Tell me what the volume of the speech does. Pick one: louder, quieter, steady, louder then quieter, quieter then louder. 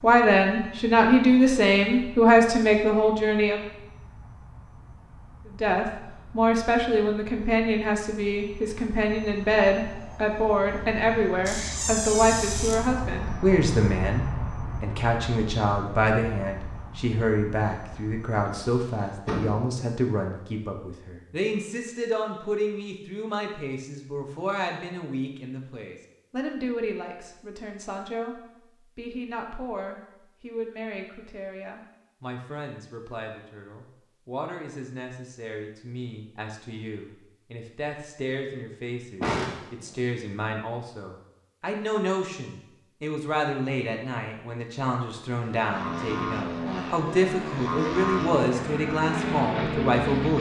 quieter then louder.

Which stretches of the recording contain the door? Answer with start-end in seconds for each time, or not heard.
11.4-12.8, 18.4-19.8, 39.2-40.0.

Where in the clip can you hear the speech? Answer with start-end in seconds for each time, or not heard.
0.0-3.6, 5.5-50.3.